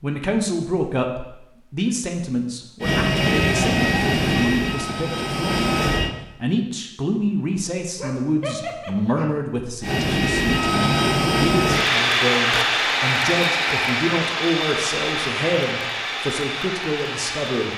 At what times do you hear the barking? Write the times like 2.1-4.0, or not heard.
8.0-9.4.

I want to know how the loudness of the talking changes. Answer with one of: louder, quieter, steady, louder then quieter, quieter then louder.
steady.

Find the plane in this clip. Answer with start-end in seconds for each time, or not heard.
2.8-6.2, 9.8-17.7.